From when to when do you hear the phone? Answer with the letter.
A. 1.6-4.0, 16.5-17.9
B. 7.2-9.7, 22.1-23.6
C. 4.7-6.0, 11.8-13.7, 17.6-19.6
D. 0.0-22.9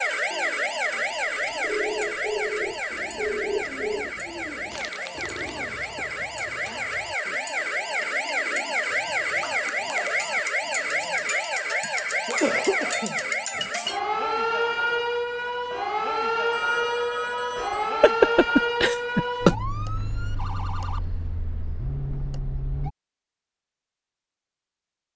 A.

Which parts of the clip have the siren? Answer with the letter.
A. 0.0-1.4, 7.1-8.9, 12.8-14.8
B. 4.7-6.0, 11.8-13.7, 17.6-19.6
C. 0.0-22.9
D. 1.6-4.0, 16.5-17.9
C.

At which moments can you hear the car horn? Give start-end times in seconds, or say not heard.
not heard.